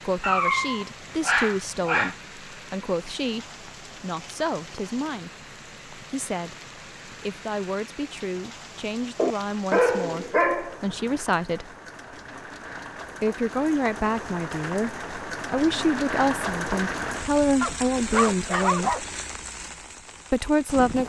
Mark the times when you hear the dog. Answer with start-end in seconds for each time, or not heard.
0.2-2.1, 9.2-11.2, 17.6-19.0.